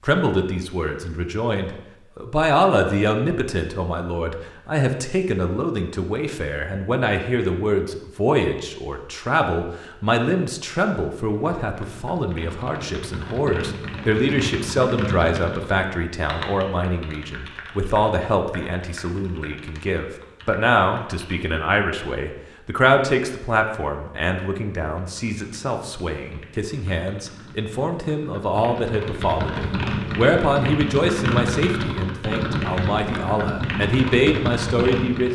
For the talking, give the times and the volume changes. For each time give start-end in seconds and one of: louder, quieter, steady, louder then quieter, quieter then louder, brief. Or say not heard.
0.0-35.3 steady.